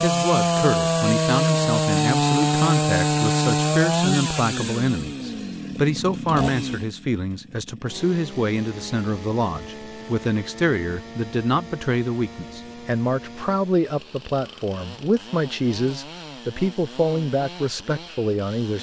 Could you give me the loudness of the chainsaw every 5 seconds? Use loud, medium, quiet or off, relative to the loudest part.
loud, quiet, quiet, quiet.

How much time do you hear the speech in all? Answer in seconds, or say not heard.
19 s.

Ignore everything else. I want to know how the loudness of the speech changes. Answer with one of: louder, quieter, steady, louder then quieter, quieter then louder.
steady.